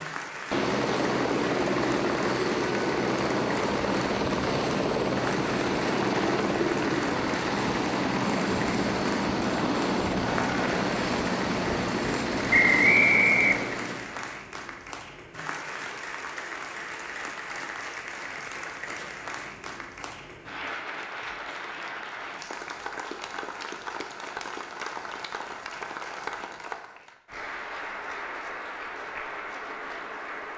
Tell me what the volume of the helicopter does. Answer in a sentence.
The volume of the helicopter stays about the same.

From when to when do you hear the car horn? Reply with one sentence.
You can't hear the car horn here.